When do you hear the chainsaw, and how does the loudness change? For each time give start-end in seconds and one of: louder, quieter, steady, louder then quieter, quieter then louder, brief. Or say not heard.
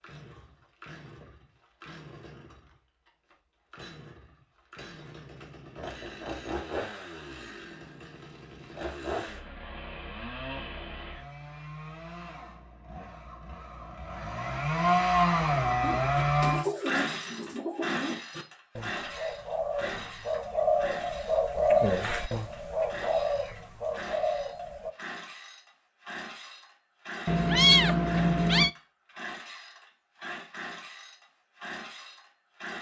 0.0-32.7 louder then quieter.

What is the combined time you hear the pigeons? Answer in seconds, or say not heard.
9 s.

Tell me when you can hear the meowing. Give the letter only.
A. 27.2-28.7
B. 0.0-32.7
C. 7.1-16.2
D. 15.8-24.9
A.